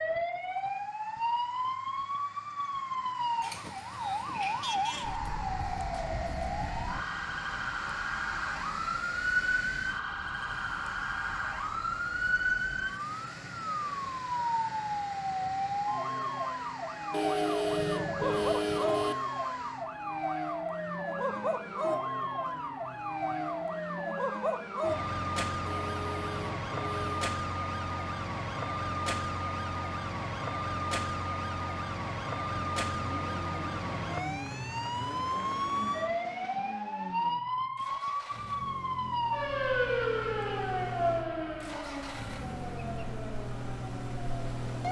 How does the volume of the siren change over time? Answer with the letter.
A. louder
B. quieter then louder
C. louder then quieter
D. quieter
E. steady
E.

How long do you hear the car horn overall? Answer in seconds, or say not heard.
4 s.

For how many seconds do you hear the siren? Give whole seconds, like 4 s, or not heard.
45 s.